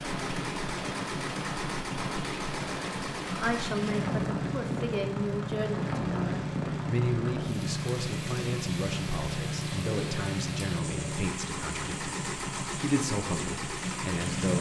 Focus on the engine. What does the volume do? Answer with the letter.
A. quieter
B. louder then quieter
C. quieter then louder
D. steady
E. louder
D.